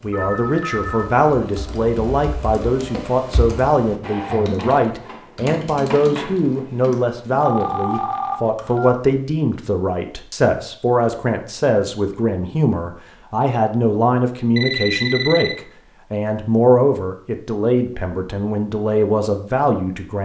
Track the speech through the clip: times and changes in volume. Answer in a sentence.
You can hear the speech from 0.0 to 20.1 s, at a steady volume.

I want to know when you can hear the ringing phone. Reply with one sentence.
The ringing phone can be heard from 0.1 to 1.1 s, from 7.4 to 8.9 s and from 14.6 to 15.6 s.